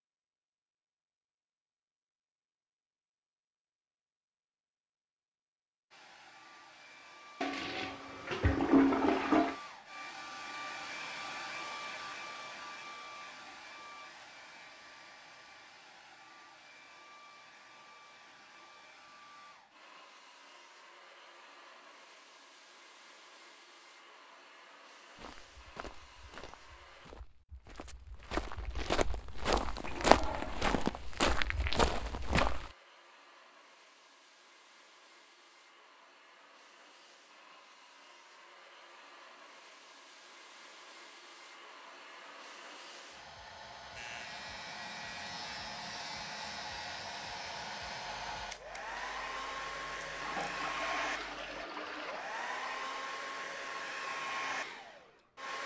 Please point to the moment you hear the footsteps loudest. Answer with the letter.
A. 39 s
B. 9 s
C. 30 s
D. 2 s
C.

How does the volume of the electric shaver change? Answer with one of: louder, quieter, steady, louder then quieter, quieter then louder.
quieter.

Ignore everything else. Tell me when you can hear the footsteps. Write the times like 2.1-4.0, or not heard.
25.1-32.7.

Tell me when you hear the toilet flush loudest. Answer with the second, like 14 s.
9 s.